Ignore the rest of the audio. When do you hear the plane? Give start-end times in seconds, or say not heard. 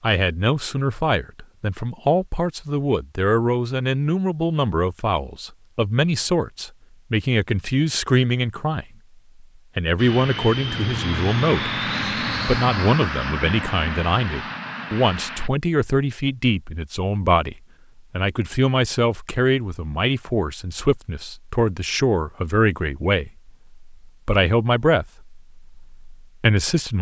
9.9-15.5.